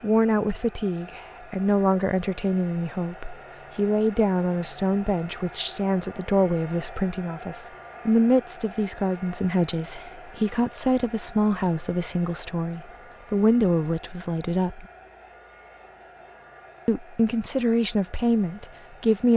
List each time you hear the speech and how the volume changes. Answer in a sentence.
The speech can be heard from 0.0 to 14.8 s, at a steady volume; and briefly from 16.9 to 19.3 s.